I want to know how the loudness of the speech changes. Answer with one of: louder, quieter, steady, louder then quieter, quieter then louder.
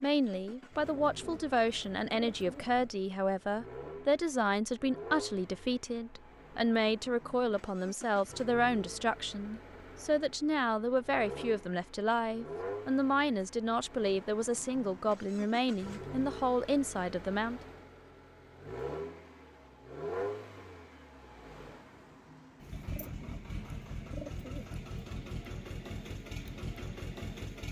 steady.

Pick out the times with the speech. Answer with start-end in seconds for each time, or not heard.
0.0-17.6.